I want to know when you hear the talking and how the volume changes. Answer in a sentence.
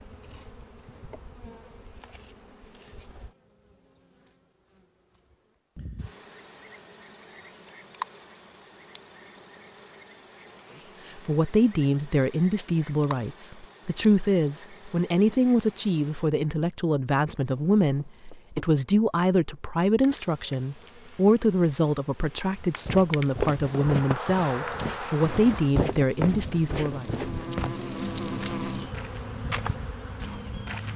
The talking can be heard from 11.2 to 27.1 s, at a steady volume.